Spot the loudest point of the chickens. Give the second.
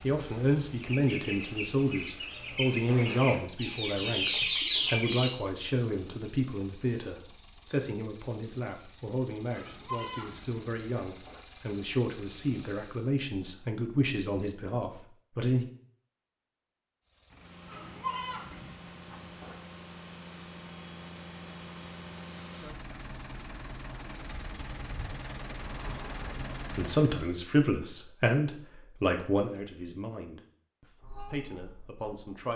5 s.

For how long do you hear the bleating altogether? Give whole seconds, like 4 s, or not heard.
4 s.